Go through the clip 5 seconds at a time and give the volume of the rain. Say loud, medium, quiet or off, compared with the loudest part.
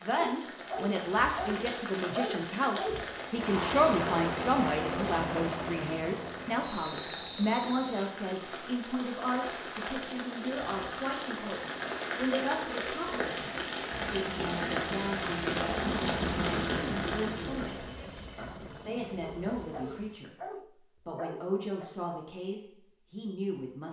medium, medium, loud, loud, off.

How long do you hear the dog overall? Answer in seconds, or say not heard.
6 s.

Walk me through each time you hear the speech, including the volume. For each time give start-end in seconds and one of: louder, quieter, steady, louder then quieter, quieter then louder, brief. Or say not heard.
0.0-20.3 quieter
21.1-23.8 brief.